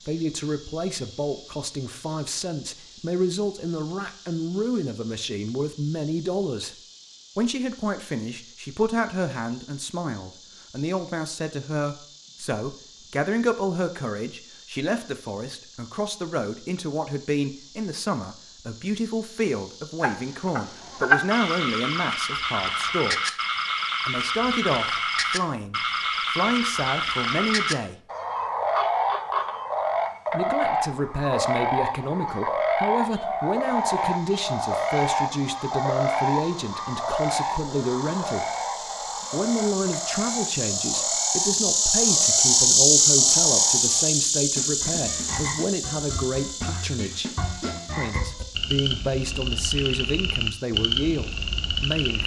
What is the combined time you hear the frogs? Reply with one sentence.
The frogs can be heard for 32 seconds in total.